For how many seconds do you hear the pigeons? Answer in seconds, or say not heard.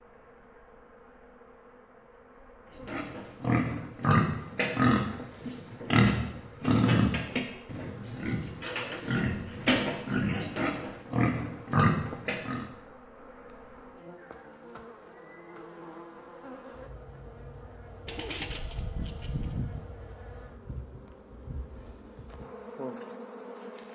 2 s.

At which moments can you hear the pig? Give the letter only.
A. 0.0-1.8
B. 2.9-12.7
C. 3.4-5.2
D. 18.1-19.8
B.